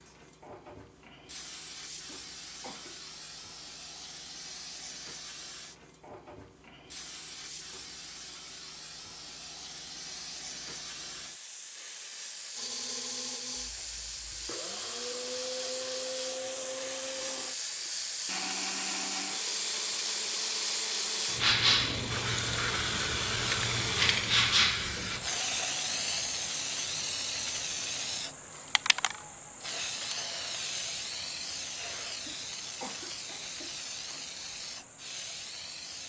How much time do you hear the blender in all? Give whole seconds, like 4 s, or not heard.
12 s.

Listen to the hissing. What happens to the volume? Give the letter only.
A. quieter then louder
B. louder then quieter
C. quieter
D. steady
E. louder
B.